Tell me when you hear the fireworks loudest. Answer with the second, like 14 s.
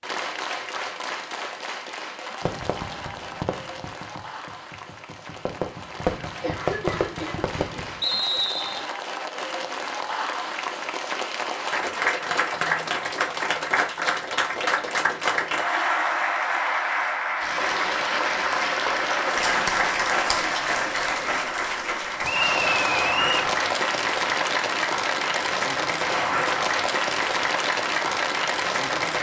7 s.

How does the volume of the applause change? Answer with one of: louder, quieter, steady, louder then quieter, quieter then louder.
louder.